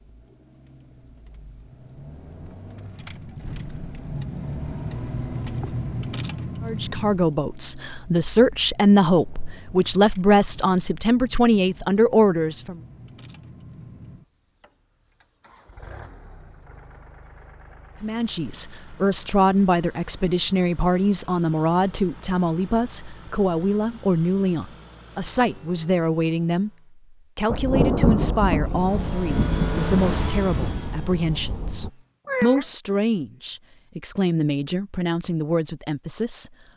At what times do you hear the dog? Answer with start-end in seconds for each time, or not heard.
not heard.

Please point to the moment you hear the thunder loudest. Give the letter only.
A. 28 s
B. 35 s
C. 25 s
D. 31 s
A.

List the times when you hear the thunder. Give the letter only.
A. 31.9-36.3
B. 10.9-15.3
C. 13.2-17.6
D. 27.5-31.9
D.